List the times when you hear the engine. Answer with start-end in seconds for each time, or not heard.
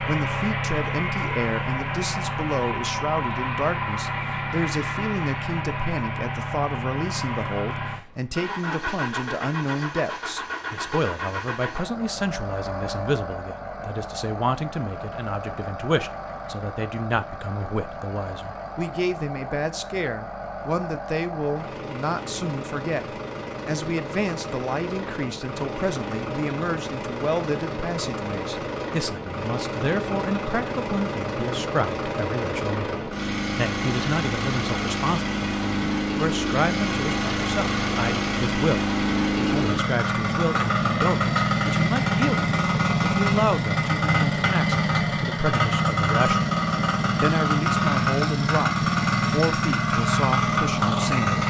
0.0-51.4.